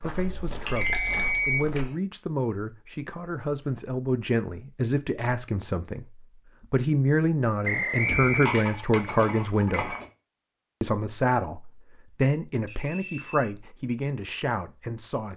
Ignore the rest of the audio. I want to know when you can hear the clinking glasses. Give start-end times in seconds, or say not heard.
0.1-1.9, 8.1-10.1.